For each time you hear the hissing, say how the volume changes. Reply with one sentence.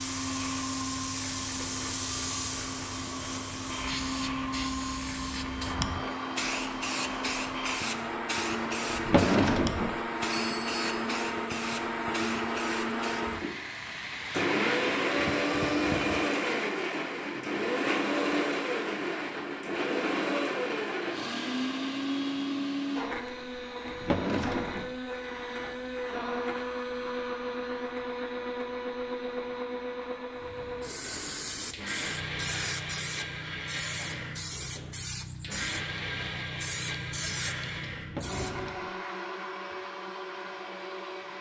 The hissing can be heard from 0.0 to 16.2 s, at a steady volume; and from 30.4 to 38.8 s, at a steady volume.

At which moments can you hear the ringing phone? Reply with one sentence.
You can hear the ringing phone from 10.3 to 11.1 s.